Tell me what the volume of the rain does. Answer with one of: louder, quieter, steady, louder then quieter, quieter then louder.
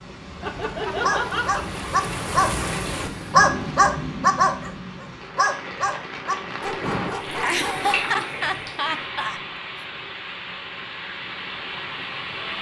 steady.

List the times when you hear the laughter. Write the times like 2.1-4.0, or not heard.
0.4-1.6, 7.2-9.4.